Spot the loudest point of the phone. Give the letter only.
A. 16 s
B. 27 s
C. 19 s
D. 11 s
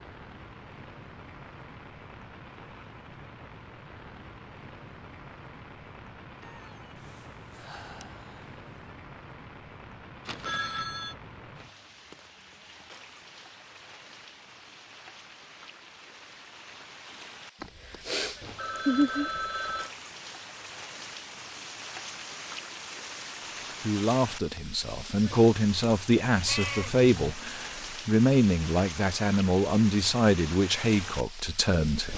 C.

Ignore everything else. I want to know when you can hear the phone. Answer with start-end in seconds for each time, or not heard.
10.2-11.2, 17.6-19.9.